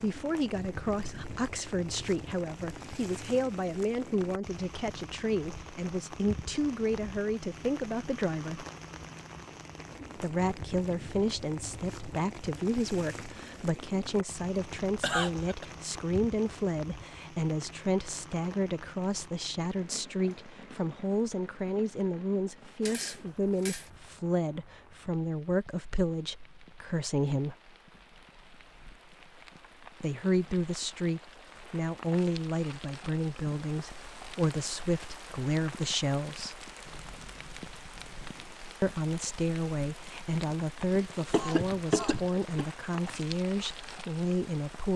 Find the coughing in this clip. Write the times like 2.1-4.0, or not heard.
14.6-15.7, 41.0-42.6.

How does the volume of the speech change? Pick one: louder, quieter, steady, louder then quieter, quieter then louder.
steady.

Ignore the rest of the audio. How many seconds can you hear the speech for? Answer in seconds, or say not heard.
39 s.